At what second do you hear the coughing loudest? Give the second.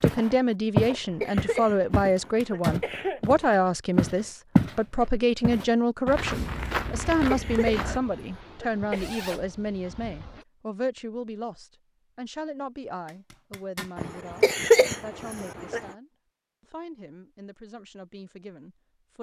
15 s.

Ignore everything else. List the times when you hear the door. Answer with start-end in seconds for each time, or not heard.
not heard.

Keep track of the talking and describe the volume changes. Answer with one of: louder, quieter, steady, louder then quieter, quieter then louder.
quieter.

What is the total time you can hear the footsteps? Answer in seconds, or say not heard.
8 s.